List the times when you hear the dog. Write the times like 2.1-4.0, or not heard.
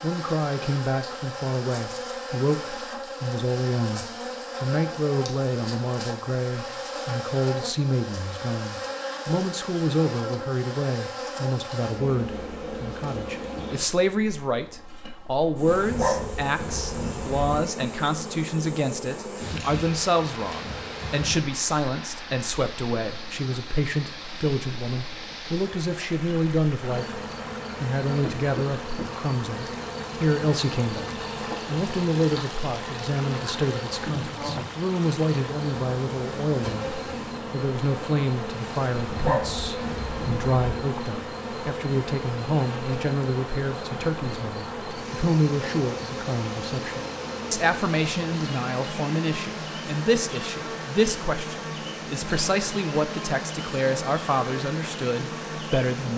15.7-17.6, 39.0-40.8.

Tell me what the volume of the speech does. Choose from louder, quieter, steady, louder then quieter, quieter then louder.
steady.